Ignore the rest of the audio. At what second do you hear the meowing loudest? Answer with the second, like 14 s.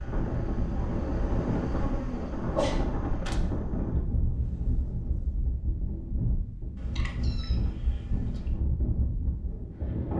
3 s.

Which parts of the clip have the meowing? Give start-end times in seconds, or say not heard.
2.5-3.4, 6.8-8.6.